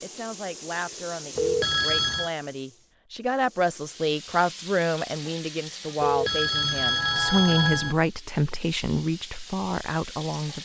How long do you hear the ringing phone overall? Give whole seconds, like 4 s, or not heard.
3 s.